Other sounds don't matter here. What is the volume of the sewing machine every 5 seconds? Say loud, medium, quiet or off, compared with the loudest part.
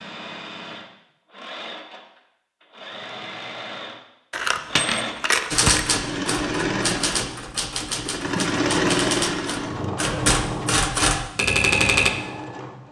medium, loud, medium.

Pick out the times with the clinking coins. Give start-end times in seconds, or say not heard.
4.3-5.9.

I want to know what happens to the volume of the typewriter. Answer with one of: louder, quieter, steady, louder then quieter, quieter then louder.
louder.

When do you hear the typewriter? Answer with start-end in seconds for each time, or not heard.
5.5-12.1.